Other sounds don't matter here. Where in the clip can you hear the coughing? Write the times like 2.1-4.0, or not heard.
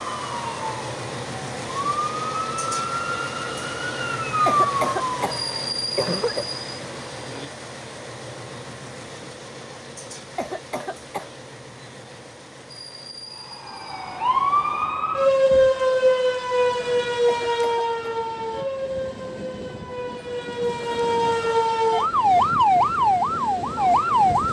4.5-6.5, 10.3-11.3, 17.2-17.9.